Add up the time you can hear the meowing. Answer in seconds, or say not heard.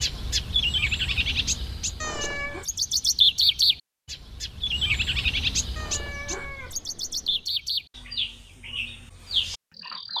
2 s.